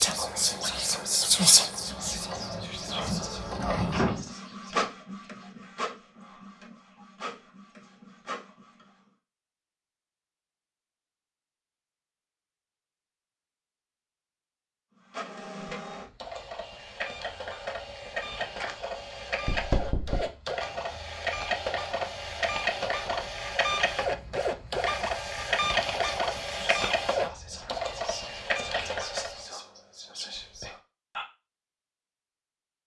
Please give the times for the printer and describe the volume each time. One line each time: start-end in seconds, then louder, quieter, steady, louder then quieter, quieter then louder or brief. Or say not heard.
0.0-9.1 louder then quieter
15.1-29.4 louder.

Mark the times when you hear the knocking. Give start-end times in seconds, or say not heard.
19.4-20.3.